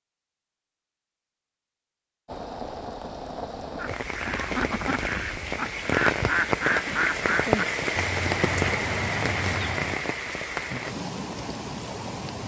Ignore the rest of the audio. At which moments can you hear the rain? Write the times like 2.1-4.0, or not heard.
2.2-12.4.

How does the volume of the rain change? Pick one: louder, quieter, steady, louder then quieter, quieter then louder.
louder then quieter.